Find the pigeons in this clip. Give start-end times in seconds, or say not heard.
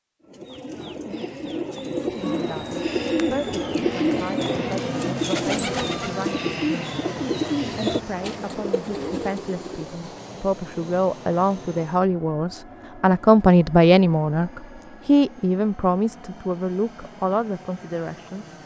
0.2-9.9.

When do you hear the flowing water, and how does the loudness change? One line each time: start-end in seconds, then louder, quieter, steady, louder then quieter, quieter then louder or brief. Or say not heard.
not heard.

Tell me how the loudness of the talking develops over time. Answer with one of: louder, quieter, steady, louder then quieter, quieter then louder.
louder then quieter.